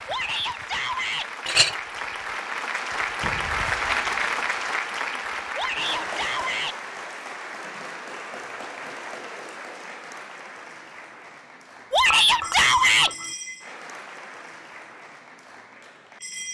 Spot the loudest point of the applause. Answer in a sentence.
The volume of the applause peaks at 4 seconds.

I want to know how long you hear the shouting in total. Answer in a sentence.
You can hear the shouting for 4 seconds altogether.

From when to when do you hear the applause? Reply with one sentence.
The applause can be heard from 0.0 to 16.4 s.